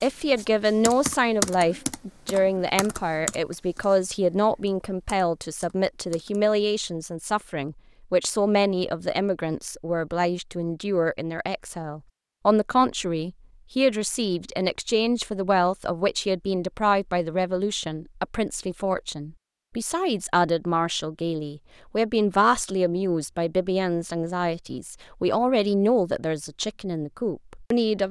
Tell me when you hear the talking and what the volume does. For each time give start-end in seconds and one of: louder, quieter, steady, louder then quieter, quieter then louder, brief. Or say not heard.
0.0-28.0 steady.